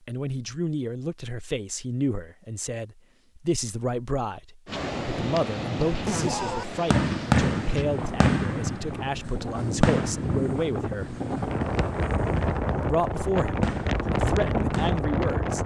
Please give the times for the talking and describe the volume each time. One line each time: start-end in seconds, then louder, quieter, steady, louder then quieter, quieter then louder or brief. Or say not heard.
0.1-11.2 steady
12.8-15.6 brief.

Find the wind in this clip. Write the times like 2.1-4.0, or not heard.
4.7-15.6.